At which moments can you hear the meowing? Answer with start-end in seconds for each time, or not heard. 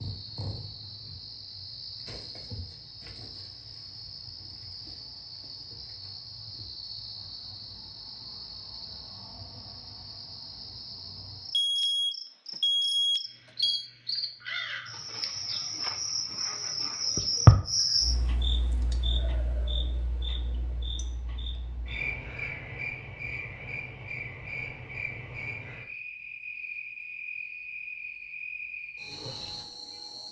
not heard.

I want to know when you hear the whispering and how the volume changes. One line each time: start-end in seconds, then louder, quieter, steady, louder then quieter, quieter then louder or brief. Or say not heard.
not heard.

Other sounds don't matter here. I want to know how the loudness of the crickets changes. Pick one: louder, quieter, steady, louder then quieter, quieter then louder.
louder then quieter.